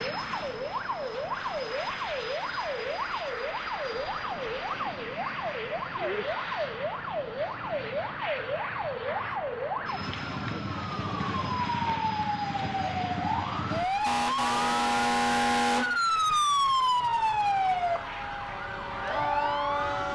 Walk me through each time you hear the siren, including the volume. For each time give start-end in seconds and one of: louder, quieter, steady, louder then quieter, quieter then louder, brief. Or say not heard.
0.0-20.0 louder.